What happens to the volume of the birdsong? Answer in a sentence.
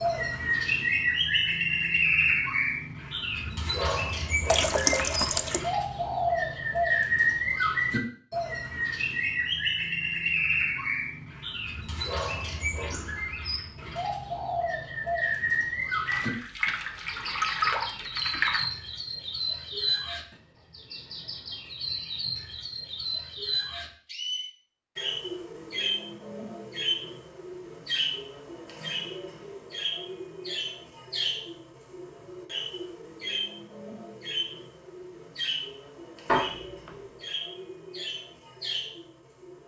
The loudness of the birdsong goes down.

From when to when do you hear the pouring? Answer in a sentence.
You can hear the pouring from 4.5 to 5.6 s, from 16.1 to 18.7 s and from 36.2 to 37.0 s.